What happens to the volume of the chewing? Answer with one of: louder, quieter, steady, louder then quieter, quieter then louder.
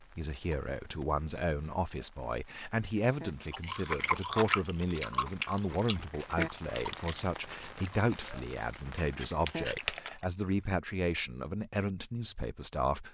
quieter then louder.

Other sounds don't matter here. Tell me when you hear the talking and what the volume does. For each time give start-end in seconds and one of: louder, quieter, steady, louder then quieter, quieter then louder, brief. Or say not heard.
0.0-13.0 steady.